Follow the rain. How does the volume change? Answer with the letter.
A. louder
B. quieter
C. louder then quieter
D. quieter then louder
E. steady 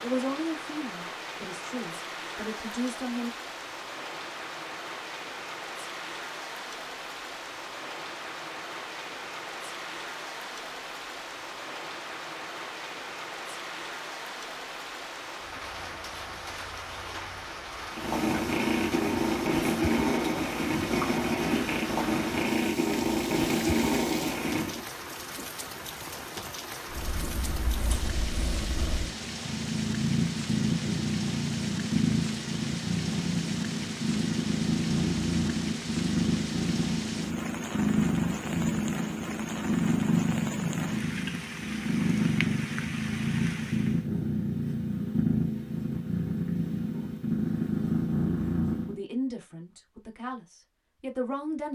E.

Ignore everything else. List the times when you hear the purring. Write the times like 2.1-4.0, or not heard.
17.9-24.9, 26.9-49.0.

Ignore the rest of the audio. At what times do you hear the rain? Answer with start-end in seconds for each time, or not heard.
0.0-44.0.